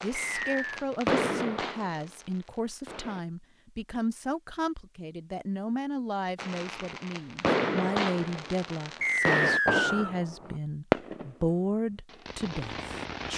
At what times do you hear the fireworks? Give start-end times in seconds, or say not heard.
0.0-3.2, 6.3-13.3.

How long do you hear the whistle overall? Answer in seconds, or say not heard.
2 s.